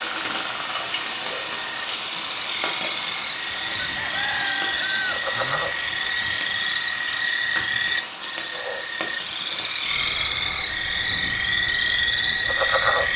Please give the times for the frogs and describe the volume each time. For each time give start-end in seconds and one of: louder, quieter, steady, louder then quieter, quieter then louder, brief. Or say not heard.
0.0-13.1 louder.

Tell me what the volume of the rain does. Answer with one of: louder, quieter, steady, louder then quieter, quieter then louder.
quieter.